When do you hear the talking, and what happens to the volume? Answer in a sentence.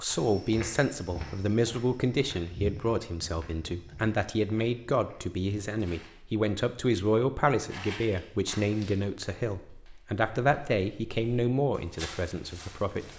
You can hear the talking from 0.0 to 13.1 s, at a steady volume.